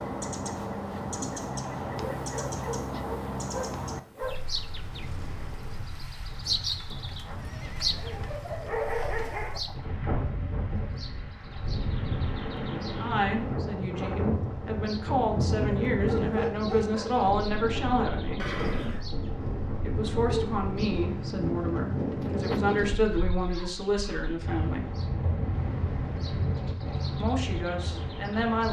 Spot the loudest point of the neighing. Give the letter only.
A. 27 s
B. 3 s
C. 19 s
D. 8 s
C.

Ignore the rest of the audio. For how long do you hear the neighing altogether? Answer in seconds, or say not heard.
2 s.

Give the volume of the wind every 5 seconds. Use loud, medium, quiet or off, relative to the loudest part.
quiet, quiet, loud, loud, loud, loud.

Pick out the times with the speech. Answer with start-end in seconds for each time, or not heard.
12.9-18.6, 19.8-24.9, 27.2-28.6.